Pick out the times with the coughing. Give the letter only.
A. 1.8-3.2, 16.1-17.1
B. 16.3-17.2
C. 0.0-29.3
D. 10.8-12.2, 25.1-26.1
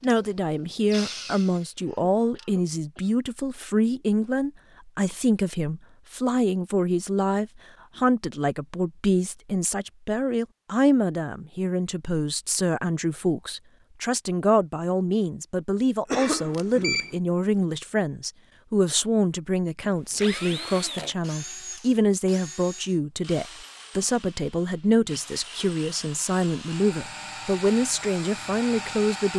A.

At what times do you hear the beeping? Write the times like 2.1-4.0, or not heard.
16.3-17.2.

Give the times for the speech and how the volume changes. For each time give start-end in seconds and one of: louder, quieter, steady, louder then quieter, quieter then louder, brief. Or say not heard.
0.0-29.3 steady.